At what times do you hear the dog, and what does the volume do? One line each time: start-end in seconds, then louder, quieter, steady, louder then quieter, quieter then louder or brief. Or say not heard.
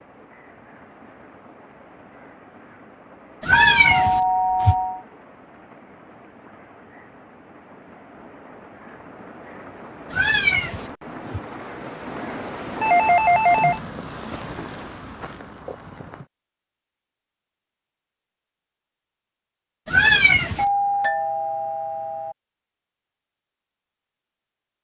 not heard.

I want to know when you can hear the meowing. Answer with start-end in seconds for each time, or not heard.
3.4-4.8, 10.1-11.4, 19.9-20.6.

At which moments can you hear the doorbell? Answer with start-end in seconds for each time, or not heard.
3.5-5.0, 12.8-13.8, 20.6-22.4.